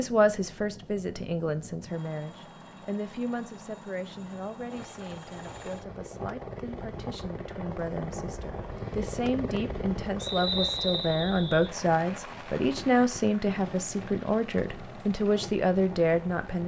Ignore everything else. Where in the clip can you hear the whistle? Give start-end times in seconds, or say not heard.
10.2-11.7.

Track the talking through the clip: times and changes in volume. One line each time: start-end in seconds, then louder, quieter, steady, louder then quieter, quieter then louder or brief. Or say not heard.
0.0-16.6 quieter then louder.